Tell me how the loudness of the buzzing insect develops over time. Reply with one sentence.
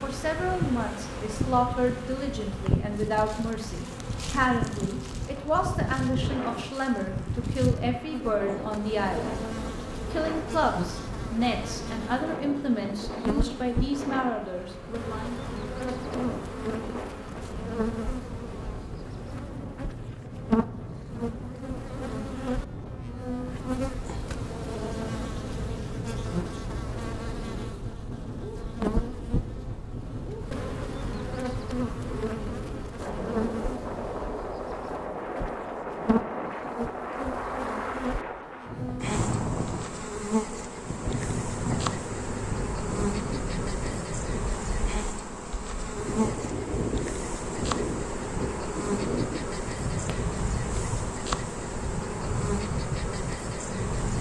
The loudness of the buzzing insect stays about the same.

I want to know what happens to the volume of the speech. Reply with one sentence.
The loudness of the speech stays about the same.